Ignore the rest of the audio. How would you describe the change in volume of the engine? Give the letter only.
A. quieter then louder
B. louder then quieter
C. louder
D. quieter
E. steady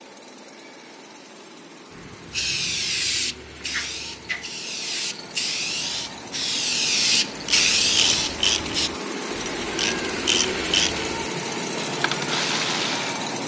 C.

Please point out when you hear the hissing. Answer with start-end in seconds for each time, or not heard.
1.9-8.9.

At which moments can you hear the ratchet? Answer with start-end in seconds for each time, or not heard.
7.5-13.2.